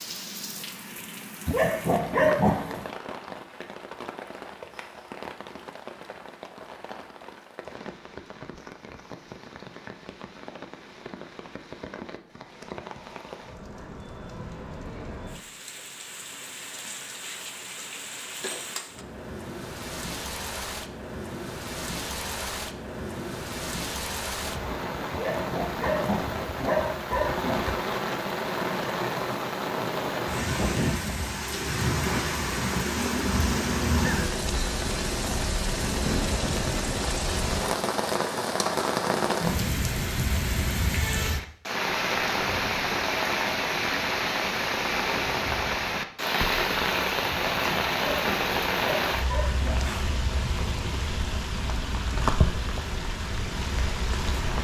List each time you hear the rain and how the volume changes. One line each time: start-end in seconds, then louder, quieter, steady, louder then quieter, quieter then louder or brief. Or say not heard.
0.0-54.5 louder.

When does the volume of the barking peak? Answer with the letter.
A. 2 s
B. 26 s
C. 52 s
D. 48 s
A.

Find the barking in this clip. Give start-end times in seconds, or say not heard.
1.4-2.9, 25.1-27.6, 47.3-49.8.